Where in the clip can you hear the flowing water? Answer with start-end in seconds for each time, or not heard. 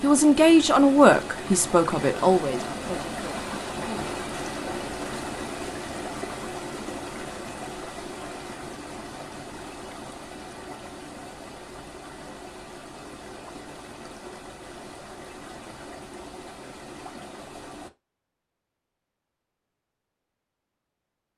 0.0-17.9.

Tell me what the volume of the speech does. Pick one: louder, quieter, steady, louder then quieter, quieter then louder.
quieter.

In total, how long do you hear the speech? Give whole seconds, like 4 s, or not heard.
4 s.